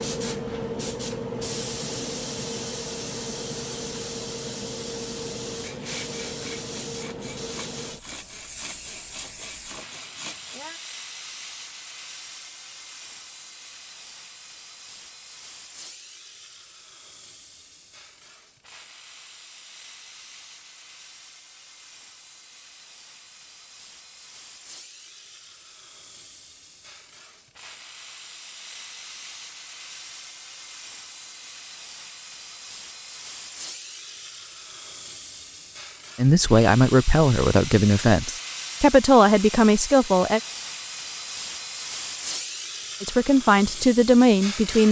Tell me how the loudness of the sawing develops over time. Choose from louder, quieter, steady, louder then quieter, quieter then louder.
steady.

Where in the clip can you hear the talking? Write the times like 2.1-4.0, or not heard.
36.1-40.4, 43.0-44.8.